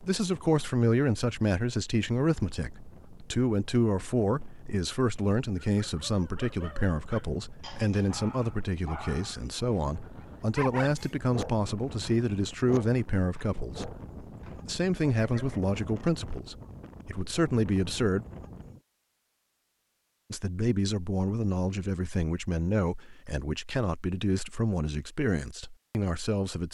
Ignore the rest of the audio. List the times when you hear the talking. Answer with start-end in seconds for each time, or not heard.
0.0-13.9, 14.6-18.2, 20.3-26.6.